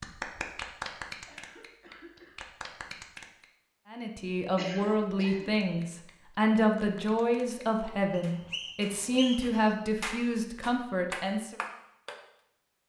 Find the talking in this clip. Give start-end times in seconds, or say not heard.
3.9-11.6.